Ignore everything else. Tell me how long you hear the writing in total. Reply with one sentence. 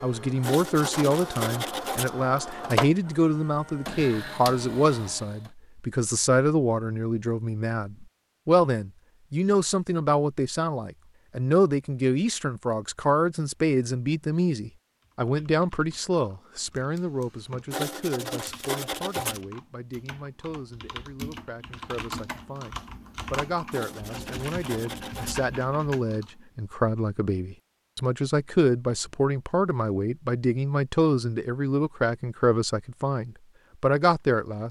You can hear the writing for 5 seconds altogether.